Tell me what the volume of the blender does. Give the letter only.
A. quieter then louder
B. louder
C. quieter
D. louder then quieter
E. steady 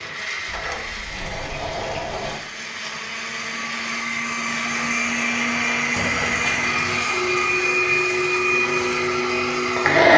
B.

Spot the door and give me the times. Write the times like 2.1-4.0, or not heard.
0.5-2.4, 6.0-6.9.